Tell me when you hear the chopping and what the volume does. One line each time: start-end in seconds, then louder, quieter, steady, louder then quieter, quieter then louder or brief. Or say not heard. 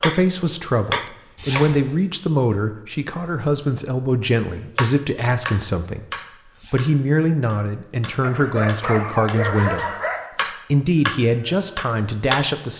0.0-1.8 brief
4.8-12.6 quieter then louder.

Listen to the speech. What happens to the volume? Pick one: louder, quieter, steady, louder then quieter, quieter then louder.
steady.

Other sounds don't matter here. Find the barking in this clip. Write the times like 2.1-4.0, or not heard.
8.2-10.3.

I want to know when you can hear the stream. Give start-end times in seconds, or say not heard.
not heard.